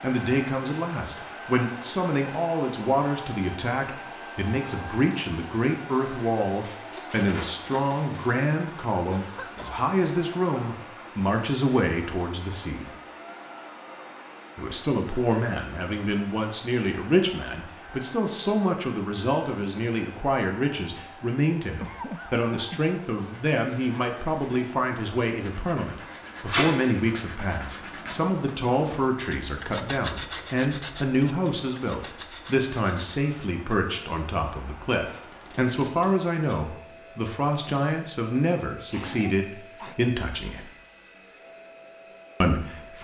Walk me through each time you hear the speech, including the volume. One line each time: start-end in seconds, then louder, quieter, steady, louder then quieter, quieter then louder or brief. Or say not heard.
0.0-12.9 steady
14.6-40.7 steady
42.4-42.9 brief.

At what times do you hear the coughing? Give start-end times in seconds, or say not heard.
9.1-9.7, 21.8-22.8, 38.9-40.0.